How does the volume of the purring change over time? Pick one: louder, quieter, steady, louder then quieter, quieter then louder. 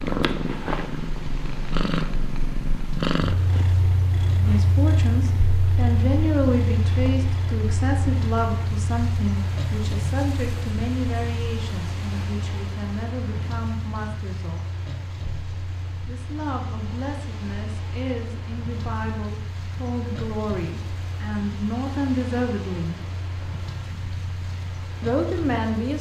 quieter.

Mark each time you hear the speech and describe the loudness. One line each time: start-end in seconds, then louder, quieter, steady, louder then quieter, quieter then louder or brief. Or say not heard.
4.3-14.7 quieter
16.1-23.0 louder
25.0-25.9 brief.